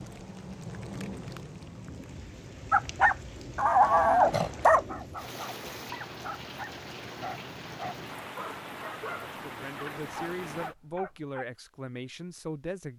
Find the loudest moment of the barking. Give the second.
4 s.